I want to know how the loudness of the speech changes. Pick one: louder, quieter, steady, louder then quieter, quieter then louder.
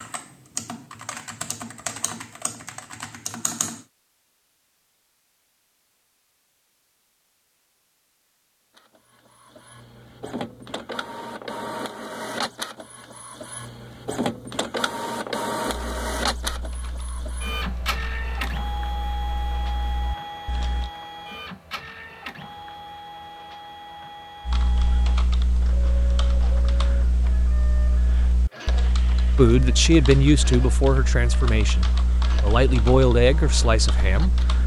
quieter then louder.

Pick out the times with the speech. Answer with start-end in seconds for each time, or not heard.
29.4-34.4.